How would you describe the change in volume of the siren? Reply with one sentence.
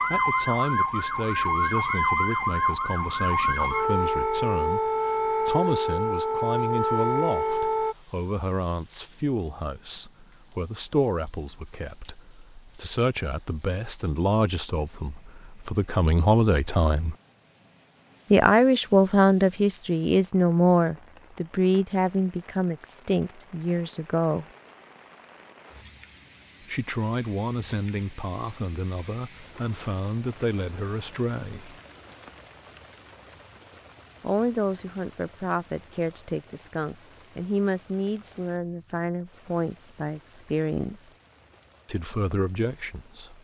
The volume of the siren stays about the same.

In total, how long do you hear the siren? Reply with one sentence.
You can hear the siren for 8 seconds altogether.